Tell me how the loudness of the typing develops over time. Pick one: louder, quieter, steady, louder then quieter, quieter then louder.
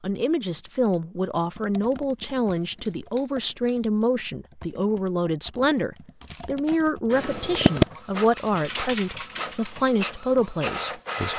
louder.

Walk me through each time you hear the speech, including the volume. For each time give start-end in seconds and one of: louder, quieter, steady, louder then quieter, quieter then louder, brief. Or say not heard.
0.0-11.3 steady.